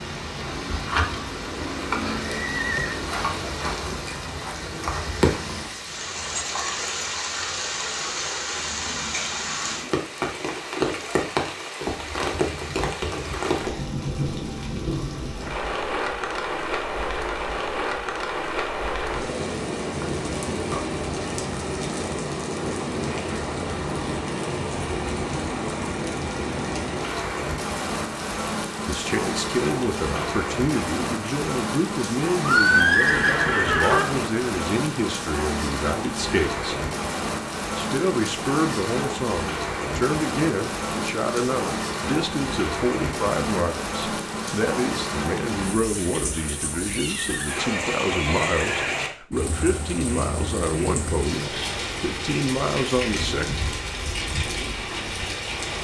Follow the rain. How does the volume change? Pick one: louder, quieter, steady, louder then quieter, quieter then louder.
steady.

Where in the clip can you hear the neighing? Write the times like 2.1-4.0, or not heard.
2.4-3.0, 32.5-34.0, 47.0-49.0.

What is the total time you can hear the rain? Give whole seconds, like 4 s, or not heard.
56 s.